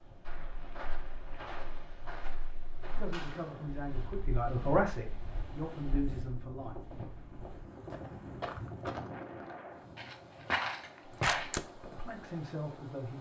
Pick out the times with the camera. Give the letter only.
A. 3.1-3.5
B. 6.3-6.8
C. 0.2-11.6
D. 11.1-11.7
D.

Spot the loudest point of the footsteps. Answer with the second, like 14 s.
11 s.